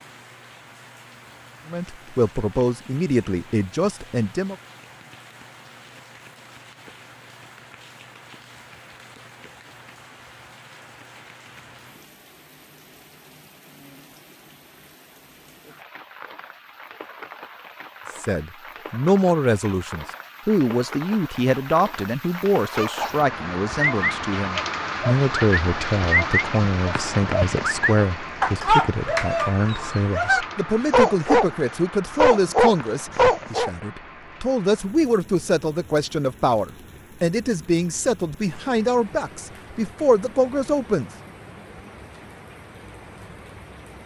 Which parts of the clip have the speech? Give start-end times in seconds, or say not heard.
1.6-4.5, 18.1-41.1.